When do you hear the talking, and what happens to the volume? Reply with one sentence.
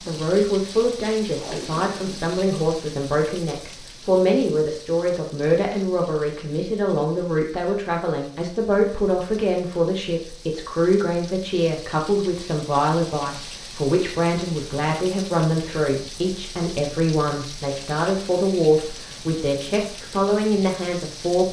The talking can be heard from 0.1 to 21.4 s, at a steady volume.